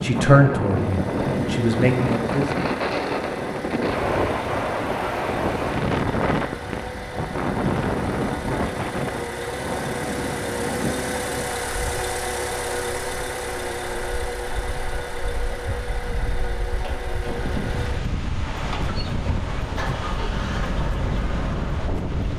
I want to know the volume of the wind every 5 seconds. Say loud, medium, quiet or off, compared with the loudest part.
loud, loud, medium, medium, medium.